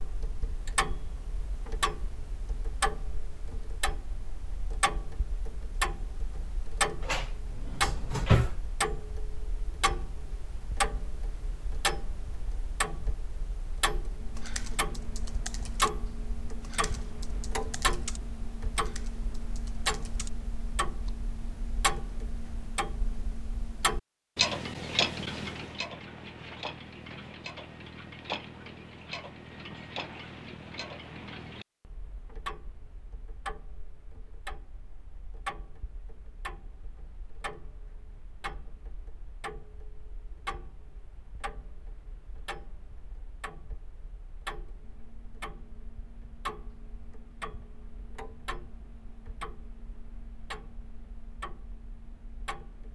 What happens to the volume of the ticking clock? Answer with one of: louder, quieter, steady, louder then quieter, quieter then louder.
quieter.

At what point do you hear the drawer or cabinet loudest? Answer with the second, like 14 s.
8 s.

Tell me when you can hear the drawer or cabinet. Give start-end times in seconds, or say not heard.
7.0-8.6.